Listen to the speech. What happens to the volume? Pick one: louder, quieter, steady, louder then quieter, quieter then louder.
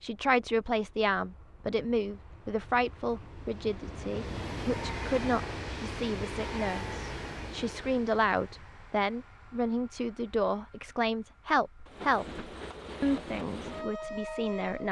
steady.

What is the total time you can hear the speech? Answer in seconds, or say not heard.
15 s.